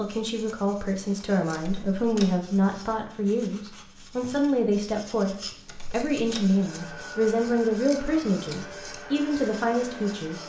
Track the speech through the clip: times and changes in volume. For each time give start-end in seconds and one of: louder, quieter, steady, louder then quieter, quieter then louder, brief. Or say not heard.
0.0-10.4 steady.